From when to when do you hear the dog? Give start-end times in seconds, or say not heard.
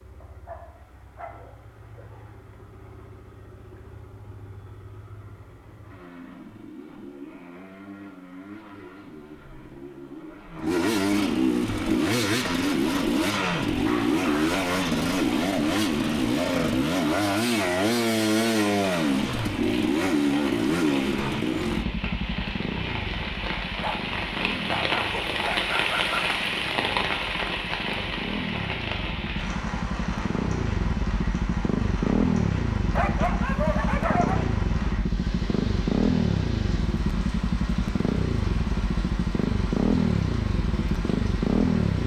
0.2-1.4, 13.8-14.6, 23.8-26.2, 33.0-34.5.